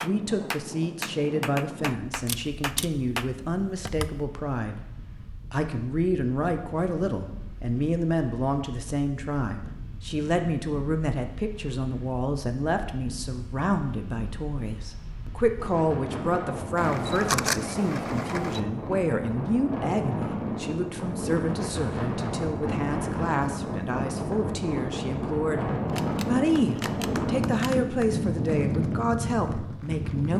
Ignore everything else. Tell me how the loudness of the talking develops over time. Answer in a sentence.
The volume of the talking stays about the same.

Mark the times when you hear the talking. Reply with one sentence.
The talking can be heard from 0.0 to 4.8 s and from 5.5 to 30.3 s.